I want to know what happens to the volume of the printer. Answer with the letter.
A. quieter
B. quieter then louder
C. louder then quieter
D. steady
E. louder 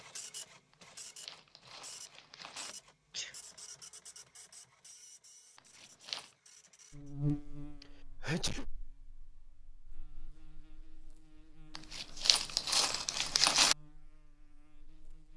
A.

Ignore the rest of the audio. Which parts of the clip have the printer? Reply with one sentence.
The printer can be heard from 0.0 to 7.2 s.